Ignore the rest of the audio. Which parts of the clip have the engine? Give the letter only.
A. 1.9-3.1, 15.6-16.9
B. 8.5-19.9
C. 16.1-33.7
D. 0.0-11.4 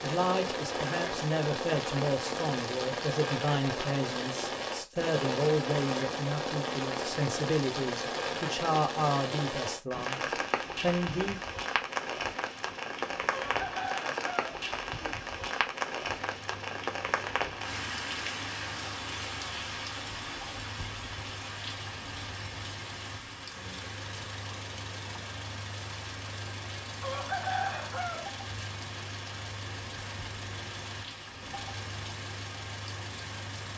C.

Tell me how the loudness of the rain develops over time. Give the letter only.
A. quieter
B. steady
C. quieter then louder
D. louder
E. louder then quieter
A.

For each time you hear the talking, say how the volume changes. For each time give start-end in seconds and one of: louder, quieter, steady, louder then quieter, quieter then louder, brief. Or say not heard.
0.0-11.4 steady.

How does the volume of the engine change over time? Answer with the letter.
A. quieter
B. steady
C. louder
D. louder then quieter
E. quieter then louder
C.